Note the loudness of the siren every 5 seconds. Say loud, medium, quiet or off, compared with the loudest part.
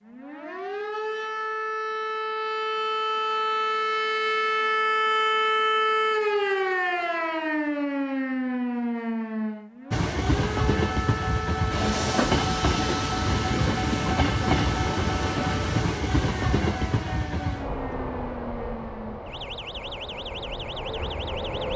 loud, loud, medium, quiet, quiet.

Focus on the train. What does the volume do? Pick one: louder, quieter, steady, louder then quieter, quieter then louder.
quieter.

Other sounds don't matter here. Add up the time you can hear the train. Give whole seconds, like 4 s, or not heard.
12 s.